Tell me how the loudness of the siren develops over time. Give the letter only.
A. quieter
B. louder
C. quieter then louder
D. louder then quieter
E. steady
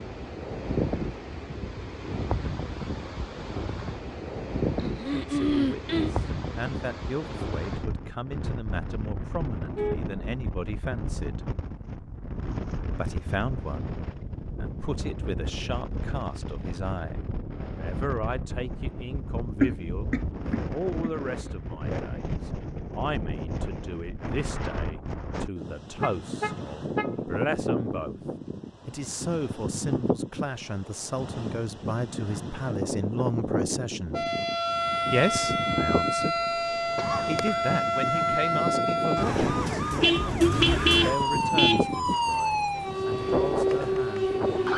E.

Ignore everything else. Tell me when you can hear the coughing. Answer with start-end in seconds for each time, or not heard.
4.8-6.1, 19.6-21.1, 37.0-37.6.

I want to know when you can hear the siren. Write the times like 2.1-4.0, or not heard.
34.1-44.7.